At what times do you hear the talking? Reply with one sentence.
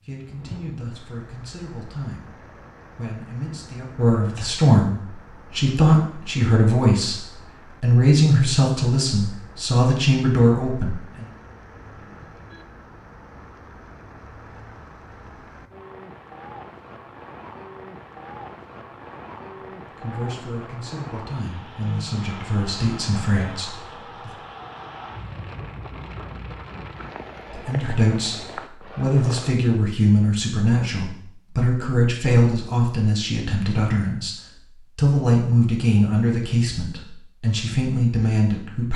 You can hear the talking from 0.1 to 11.3 s, from 19.9 to 24.4 s, from 27.5 to 34.4 s and from 35.0 to 38.9 s.